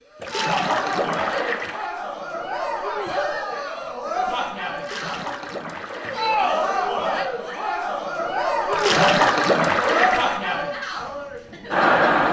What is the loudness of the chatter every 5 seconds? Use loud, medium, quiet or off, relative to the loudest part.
medium, loud, loud.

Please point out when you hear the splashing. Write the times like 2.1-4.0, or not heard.
0.2-1.9, 4.8-6.3, 8.7-10.4.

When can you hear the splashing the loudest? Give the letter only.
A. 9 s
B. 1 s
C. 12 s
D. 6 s
A.